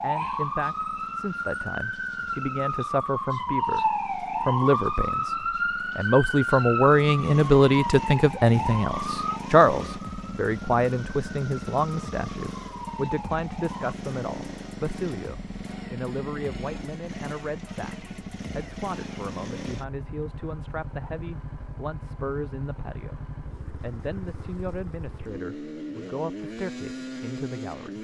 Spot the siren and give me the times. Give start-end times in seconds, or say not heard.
0.0-13.9.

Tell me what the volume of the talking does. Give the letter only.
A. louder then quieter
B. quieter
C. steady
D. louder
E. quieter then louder
A.